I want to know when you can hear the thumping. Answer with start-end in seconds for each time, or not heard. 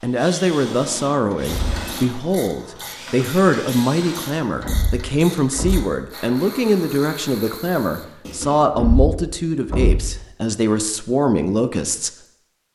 1.4-1.9, 4.6-5.8, 8.7-10.1.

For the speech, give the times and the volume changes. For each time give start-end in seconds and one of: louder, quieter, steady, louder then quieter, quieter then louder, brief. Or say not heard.
0.0-12.1 steady.